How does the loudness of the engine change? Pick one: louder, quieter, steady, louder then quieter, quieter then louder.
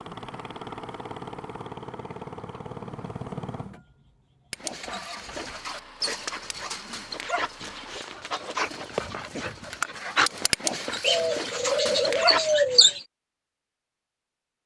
quieter.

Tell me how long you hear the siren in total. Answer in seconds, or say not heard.
not heard.